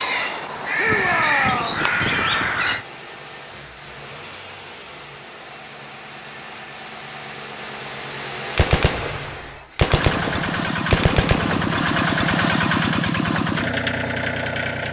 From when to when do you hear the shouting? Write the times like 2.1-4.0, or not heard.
0.8-1.9.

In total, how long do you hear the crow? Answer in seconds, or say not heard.
3 s.